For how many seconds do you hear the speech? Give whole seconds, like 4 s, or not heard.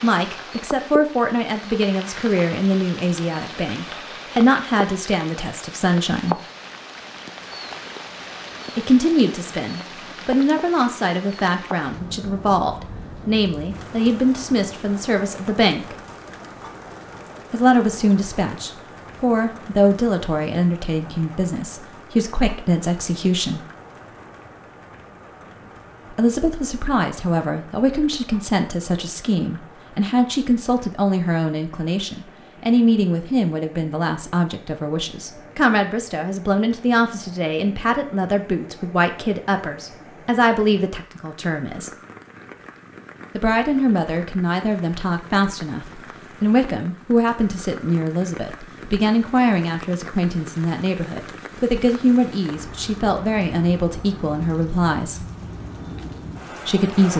48 s.